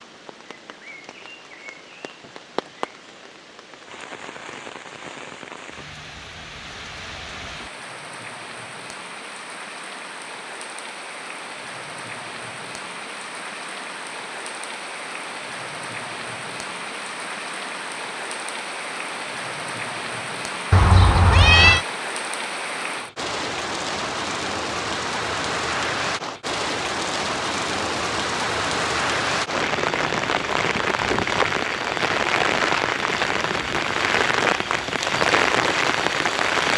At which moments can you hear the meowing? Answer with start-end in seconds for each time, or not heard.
20.7-21.9.